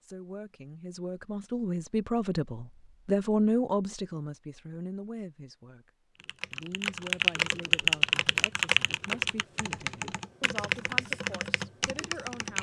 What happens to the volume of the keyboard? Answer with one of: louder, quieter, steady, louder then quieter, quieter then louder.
quieter.